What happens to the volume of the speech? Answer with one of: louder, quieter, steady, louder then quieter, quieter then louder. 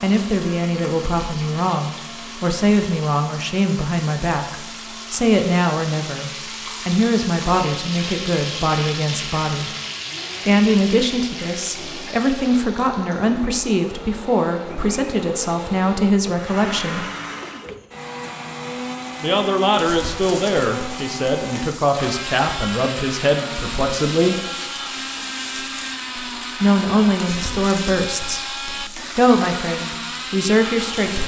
steady.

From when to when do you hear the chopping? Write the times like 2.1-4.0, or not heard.
not heard.